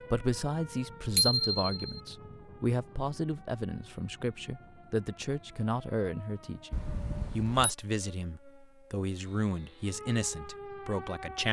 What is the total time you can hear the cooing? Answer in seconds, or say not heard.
not heard.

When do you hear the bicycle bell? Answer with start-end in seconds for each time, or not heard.
1.1-2.0, 6.7-7.7.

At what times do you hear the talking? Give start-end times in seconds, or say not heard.
0.1-11.4.